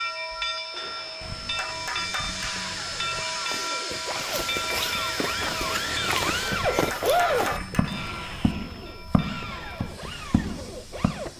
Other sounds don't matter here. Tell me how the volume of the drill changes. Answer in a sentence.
The volume of the drill goes up, then down.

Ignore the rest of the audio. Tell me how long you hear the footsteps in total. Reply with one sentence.
The footsteps can be heard for 8 seconds in total.